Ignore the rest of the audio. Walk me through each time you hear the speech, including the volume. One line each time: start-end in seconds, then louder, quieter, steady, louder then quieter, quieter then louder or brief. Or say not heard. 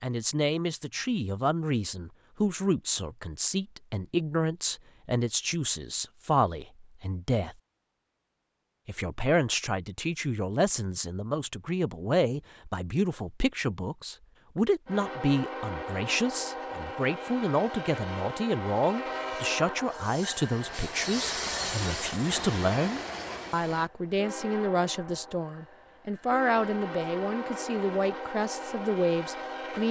0.0-7.5 steady
8.8-29.8 steady.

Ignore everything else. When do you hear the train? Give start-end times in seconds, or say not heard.
14.8-29.8.